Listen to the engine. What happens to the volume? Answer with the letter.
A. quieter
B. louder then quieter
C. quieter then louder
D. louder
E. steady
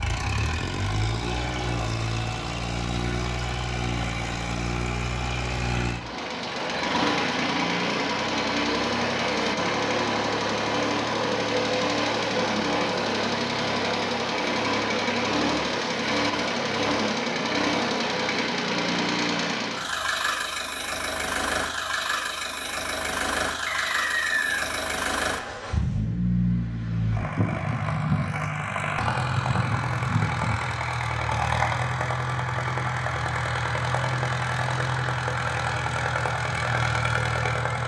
E.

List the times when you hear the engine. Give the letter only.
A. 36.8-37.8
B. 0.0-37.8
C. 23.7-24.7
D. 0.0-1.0
B.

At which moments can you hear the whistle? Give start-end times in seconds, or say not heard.
23.7-24.7.